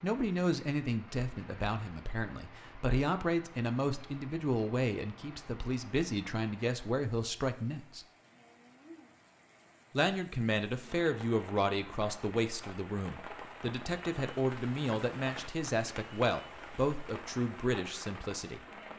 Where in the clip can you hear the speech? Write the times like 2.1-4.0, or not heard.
0.0-8.1, 9.9-18.6.